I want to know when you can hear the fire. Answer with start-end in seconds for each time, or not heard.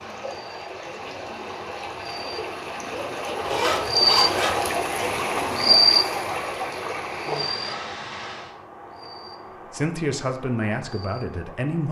not heard.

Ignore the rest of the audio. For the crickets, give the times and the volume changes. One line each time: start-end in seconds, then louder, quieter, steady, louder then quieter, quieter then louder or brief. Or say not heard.
0.1-11.8 louder then quieter.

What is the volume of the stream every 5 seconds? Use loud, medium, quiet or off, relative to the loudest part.
loud, loud, off.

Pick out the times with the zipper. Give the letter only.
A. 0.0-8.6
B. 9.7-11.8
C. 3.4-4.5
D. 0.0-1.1
C.